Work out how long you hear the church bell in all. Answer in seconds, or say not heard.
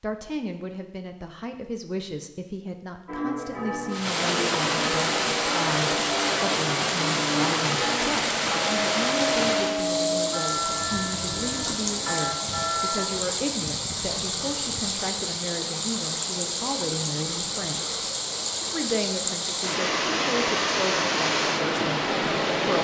10 s.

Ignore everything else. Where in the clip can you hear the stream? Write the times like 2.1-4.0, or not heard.
3.9-22.7.